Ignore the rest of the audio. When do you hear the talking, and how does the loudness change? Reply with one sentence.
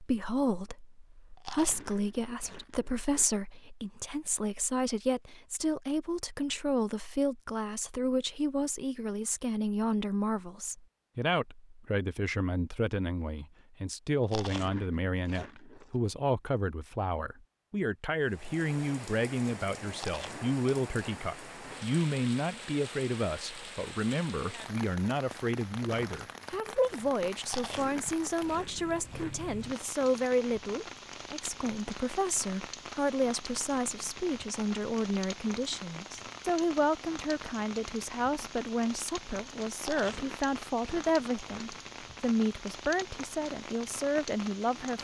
The talking can be heard from 0.0 to 44.9 s, at a steady volume.